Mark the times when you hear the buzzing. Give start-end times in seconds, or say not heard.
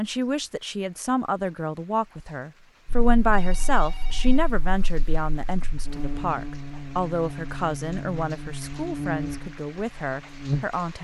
2.9-10.8.